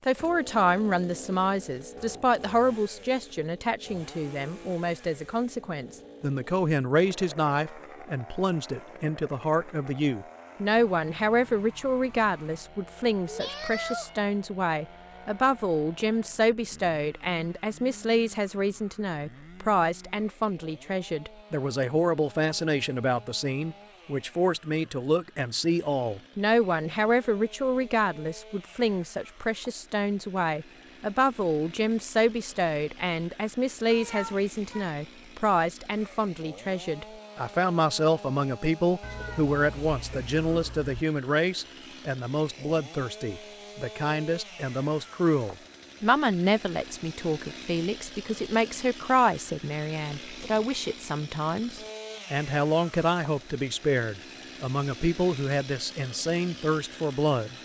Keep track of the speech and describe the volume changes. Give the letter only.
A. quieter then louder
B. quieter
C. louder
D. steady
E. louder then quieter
D.